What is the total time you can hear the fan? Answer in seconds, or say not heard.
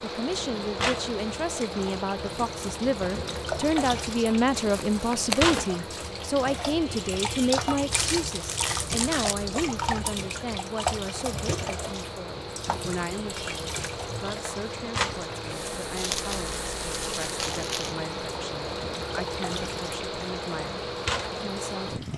22 s.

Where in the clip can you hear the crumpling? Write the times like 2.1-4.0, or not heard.
4.5-5.7, 7.9-9.3, 15.9-17.9.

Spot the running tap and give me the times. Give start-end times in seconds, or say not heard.
0.0-22.1.